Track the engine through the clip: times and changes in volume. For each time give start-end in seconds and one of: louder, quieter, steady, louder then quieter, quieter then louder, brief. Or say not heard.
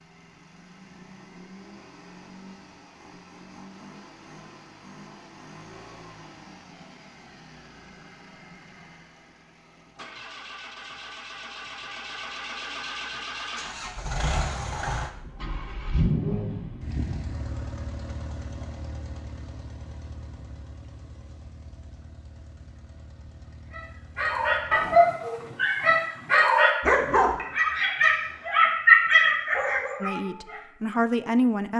0.0-26.6 louder then quieter.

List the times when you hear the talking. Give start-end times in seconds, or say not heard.
30.0-31.7.